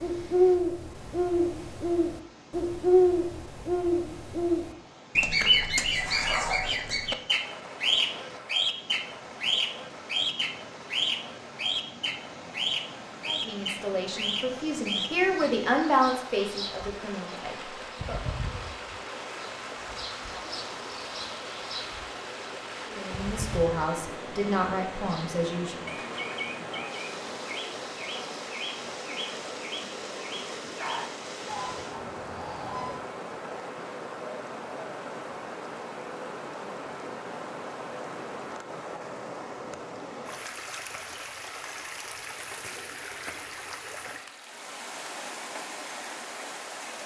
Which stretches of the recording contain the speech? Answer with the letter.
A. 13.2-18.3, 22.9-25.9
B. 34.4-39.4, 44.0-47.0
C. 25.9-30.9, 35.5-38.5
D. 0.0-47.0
A.